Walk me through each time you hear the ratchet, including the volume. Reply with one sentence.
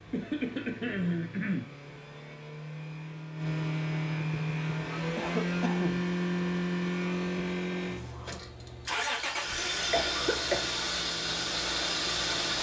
The ratchet can't be heard in this clip.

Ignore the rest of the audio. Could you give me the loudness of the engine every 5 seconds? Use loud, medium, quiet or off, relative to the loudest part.
medium, loud, loud.